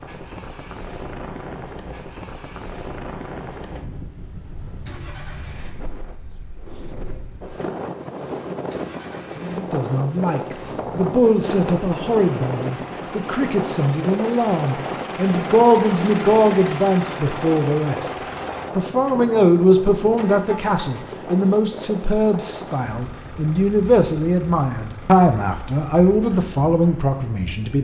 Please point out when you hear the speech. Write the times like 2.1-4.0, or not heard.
9.3-18.1, 18.8-27.7.